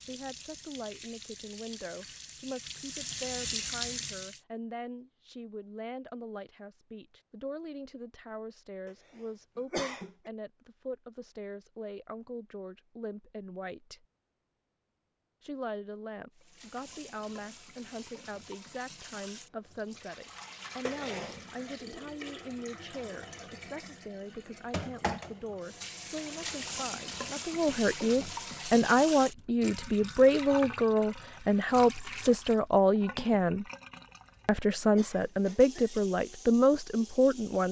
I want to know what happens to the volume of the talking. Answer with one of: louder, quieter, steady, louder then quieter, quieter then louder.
louder.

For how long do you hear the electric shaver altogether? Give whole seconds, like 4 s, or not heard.
not heard.